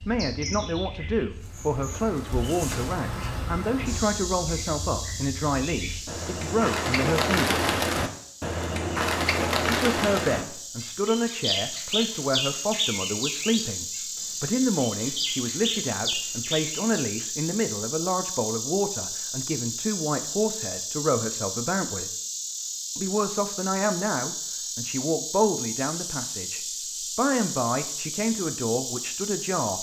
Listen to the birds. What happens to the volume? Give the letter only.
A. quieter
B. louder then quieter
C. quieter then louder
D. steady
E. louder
B.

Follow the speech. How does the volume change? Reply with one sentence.
The loudness of the speech stays about the same.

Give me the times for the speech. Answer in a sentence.
You can hear the speech from 0.1 to 7.6 s, from 9.7 to 22.1 s and from 22.9 to 29.7 s.